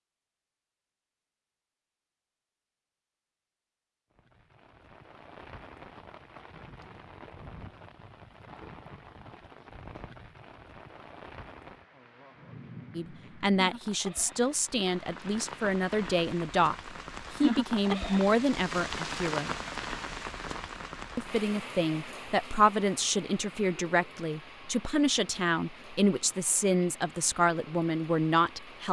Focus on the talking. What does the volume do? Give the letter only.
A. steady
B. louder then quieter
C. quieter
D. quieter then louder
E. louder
A.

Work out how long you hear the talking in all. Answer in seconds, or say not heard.
14 s.